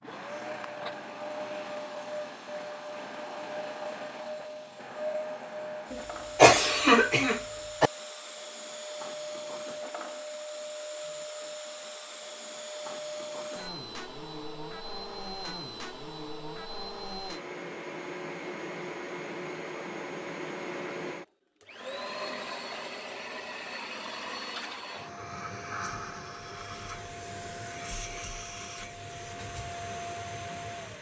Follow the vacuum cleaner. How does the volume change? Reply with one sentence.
The volume of the vacuum cleaner stays about the same.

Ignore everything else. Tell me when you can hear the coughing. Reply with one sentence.
The coughing can be heard from 5.9 to 7.9 s.